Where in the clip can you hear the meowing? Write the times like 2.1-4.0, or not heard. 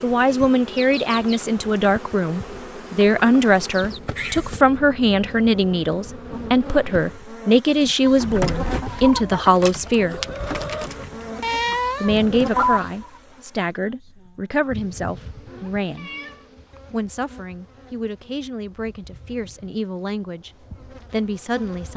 3.2-4.6, 11.4-12.8, 15.4-16.9.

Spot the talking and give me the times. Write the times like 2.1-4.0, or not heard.
0.0-10.2, 12.0-16.1, 16.9-20.5, 21.1-21.9.